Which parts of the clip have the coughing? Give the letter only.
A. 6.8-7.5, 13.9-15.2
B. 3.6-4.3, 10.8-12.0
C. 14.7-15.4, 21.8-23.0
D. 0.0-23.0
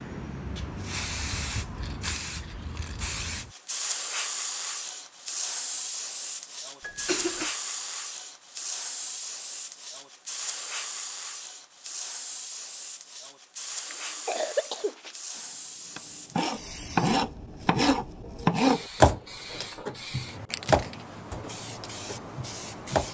A.